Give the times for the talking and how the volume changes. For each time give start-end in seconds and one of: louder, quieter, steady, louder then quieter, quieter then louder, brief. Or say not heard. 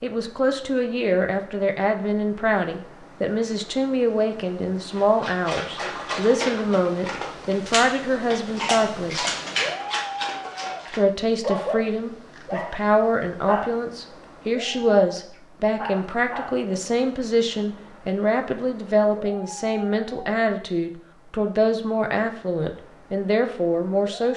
0.0-9.2 steady
10.9-24.3 steady.